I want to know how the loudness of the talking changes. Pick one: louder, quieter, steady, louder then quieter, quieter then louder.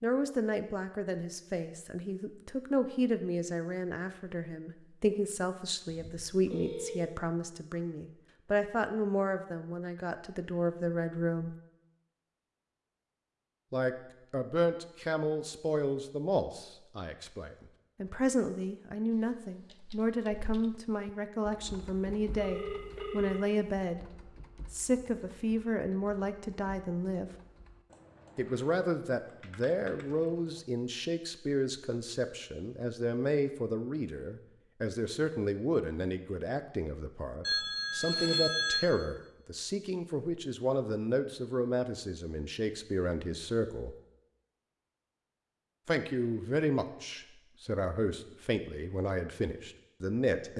steady.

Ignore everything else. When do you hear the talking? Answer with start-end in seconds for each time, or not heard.
0.0-11.6, 13.7-27.3, 28.4-44.0, 45.9-50.5.